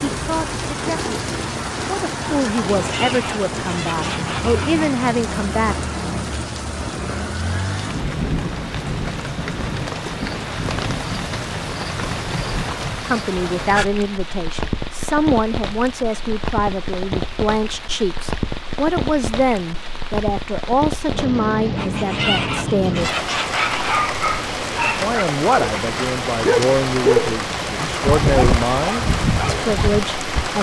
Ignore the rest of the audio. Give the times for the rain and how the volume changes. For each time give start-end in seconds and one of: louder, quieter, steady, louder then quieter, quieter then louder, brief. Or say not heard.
0.0-30.5 steady.